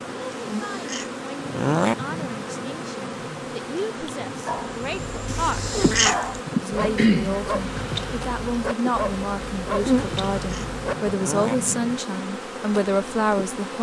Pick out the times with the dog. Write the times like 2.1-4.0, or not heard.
4.5-11.2.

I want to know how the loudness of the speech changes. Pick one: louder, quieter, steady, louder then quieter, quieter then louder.
louder.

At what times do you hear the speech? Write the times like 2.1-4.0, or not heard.
0.2-5.8, 6.5-13.7.